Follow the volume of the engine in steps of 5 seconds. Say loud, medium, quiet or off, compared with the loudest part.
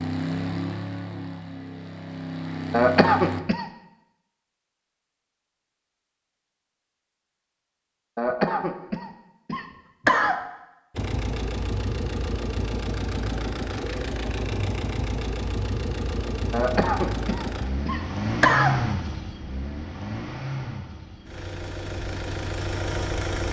loud, off, loud, loud, loud.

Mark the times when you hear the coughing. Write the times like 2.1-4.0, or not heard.
2.7-3.6, 8.2-10.4, 16.5-18.8.